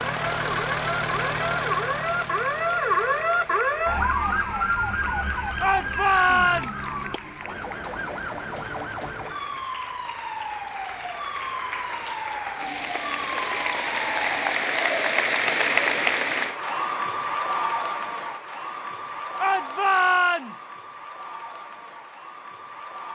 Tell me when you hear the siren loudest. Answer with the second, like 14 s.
3 s.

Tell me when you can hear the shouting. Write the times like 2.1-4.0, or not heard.
5.6-7.0, 19.4-20.8.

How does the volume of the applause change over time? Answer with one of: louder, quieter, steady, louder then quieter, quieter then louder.
louder then quieter.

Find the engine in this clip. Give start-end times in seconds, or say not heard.
0.0-4.0.